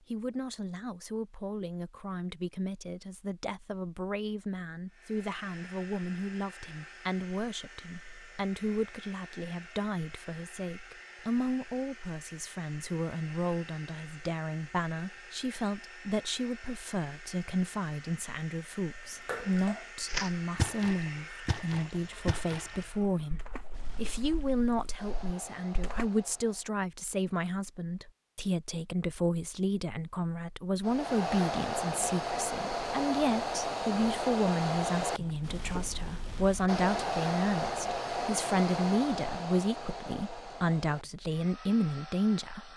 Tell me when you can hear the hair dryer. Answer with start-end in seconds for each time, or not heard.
4.9-26.8, 30.8-42.7.